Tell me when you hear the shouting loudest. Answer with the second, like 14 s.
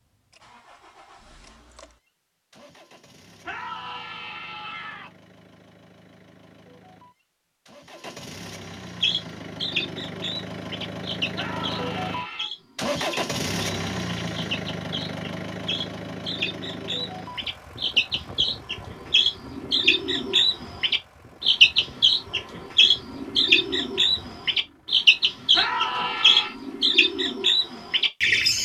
26 s.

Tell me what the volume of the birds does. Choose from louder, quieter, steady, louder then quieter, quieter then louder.
louder.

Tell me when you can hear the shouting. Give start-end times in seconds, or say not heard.
3.4-5.1, 11.3-12.5, 25.5-26.6.